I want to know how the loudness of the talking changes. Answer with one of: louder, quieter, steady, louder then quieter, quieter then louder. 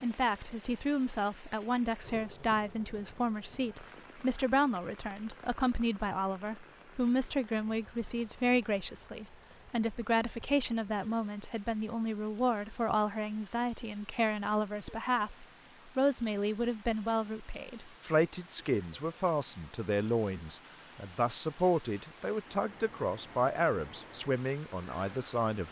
steady.